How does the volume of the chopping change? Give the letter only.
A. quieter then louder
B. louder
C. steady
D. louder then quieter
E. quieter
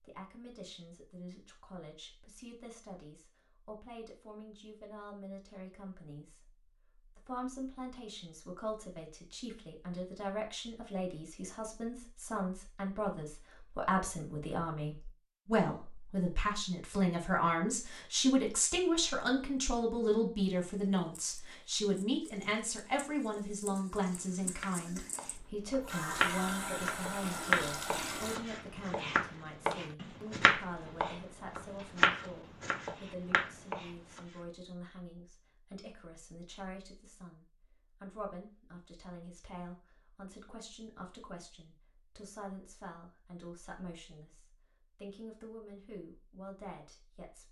D.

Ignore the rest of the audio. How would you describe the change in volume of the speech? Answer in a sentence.
The loudness of the speech goes up, then down.